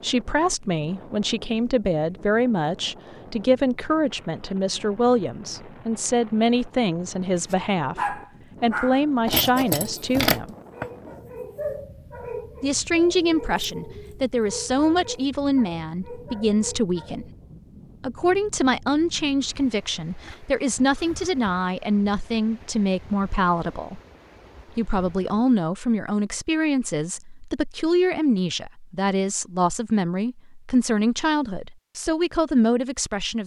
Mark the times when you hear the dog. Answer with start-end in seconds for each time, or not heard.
7.3-17.3.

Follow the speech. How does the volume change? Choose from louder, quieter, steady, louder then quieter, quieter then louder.
steady.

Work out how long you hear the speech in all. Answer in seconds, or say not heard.
30 s.